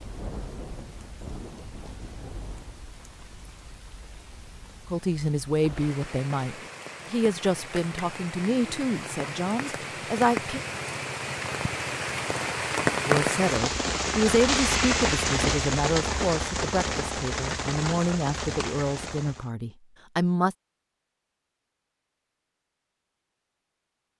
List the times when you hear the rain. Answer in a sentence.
You can hear the rain from 0.0 to 19.5 s.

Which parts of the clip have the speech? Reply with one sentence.
You can hear the speech from 4.9 to 10.6 s and from 13.1 to 20.6 s.